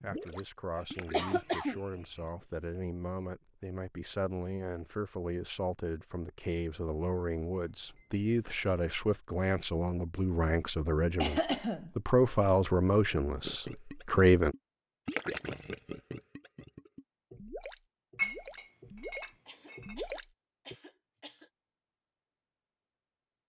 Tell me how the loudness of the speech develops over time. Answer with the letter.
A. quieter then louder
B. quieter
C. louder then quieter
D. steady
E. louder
E.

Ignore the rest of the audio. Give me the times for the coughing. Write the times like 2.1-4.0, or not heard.
0.8-2.2, 11.2-11.9, 19.3-21.5.